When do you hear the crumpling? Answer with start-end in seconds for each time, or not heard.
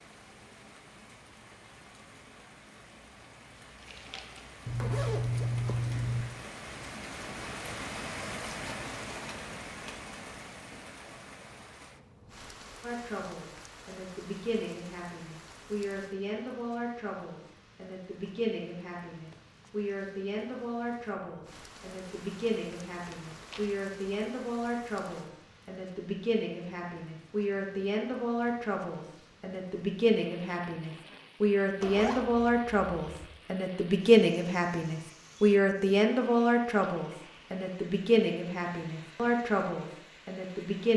3.8-4.6, 23.1-23.7.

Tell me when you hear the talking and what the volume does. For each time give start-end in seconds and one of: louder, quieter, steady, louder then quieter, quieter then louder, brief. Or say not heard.
12.8-40.9 louder.